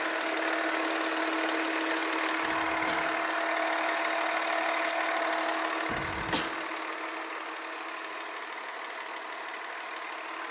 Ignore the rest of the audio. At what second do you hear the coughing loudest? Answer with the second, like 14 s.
6 s.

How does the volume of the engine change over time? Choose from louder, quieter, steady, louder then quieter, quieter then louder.
quieter.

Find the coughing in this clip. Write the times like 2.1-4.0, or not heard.
2.4-3.1, 5.8-6.5.